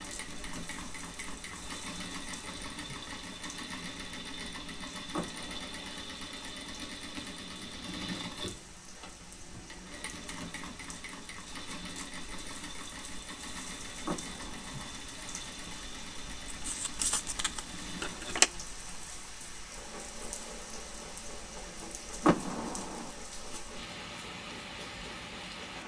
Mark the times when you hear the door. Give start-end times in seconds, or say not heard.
5.1-6.0, 14.1-14.8, 22.2-23.1.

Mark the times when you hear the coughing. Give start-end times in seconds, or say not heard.
not heard.